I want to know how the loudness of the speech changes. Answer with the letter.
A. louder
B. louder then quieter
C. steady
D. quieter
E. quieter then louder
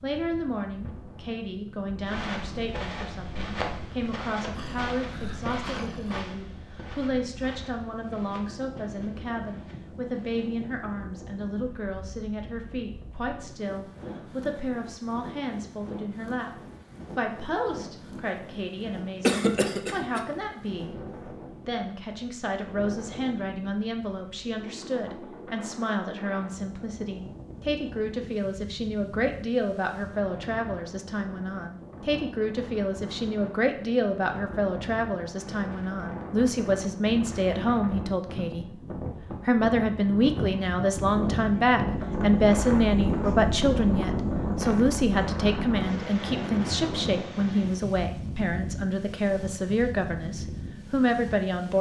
A.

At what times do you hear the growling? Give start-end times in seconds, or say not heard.
4.5-6.2.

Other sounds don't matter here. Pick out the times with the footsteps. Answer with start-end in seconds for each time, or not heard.
2.0-10.4.